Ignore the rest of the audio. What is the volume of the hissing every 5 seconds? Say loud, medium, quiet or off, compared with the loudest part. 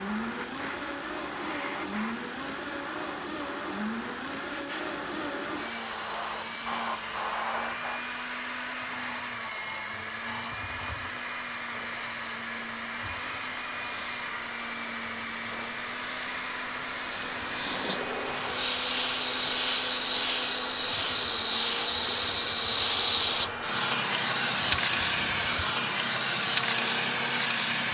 quiet, quiet, quiet, loud, loud, loud.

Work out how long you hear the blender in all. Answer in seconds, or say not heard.
28 s.